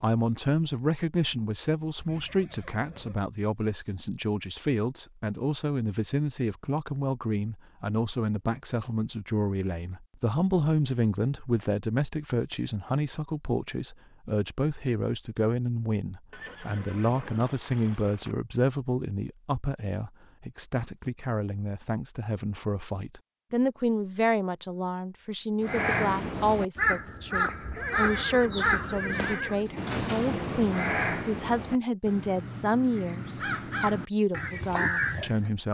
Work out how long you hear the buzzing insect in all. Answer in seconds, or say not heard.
not heard.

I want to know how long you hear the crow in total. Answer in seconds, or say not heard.
10 s.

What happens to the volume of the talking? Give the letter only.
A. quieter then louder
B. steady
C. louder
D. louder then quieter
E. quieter
B.